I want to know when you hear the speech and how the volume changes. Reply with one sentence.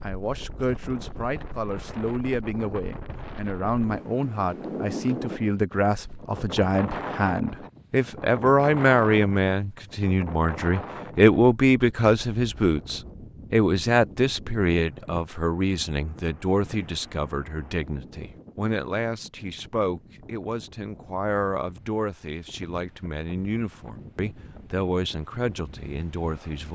The speech can be heard from 0.0 to 26.6 s, getting louder then quieter.